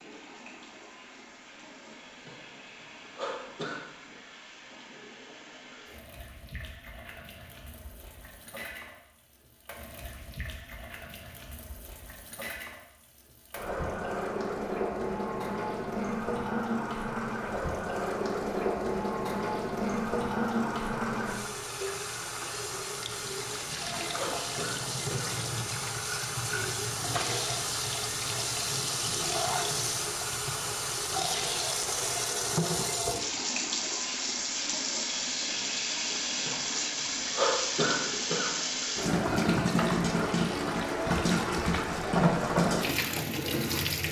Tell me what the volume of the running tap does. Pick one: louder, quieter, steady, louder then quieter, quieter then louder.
louder.